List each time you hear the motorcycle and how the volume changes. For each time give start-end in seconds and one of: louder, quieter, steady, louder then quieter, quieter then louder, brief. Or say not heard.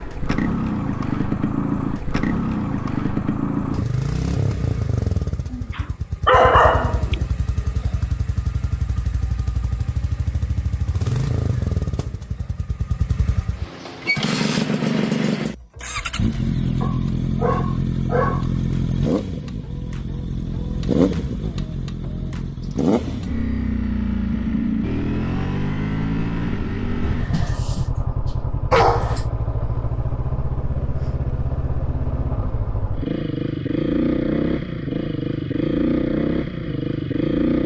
0.0-37.6 steady.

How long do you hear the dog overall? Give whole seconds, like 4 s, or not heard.
5 s.